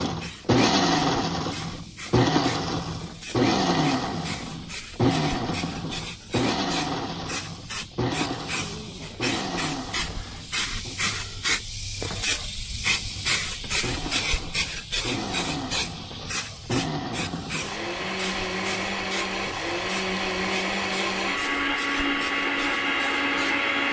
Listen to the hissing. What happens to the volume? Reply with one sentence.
The loudness of the hissing goes up, then down.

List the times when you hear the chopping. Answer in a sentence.
You can't hear the chopping here.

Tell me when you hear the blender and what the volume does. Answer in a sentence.
You can hear the blender from 0.0 to 11.0 s, getting quieter; and from 12.9 to 23.8 s, getting louder.